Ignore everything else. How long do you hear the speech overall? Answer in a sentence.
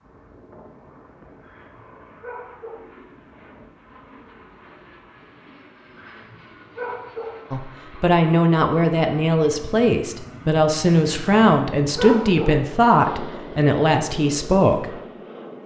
The speech can be heard for 7 seconds in total.